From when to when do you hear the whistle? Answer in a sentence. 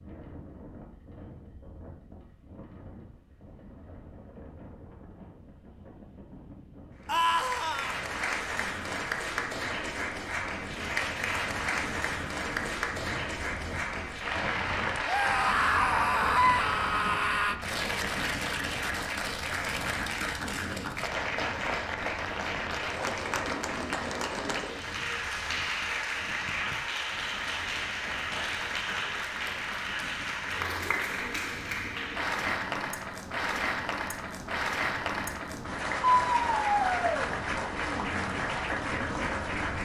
The whistle can't be heard in this clip.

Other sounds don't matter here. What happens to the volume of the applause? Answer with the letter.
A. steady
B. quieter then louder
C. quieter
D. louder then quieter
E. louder
A.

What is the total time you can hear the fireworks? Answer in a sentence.
The fireworks can't be heard in this clip.